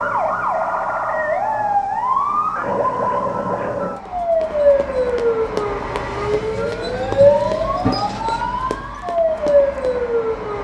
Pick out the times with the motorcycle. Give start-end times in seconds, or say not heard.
not heard.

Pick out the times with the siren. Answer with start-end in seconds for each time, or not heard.
0.0-10.6.